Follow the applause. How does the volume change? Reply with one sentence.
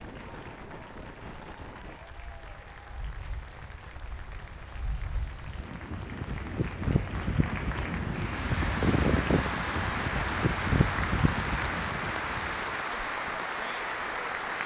The volume of the applause goes up.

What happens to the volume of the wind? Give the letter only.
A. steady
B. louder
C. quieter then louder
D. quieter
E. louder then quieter
B.